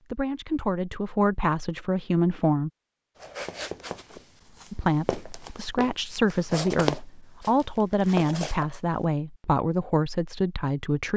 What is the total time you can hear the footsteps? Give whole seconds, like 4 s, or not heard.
6 s.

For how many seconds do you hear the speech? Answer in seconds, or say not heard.
9 s.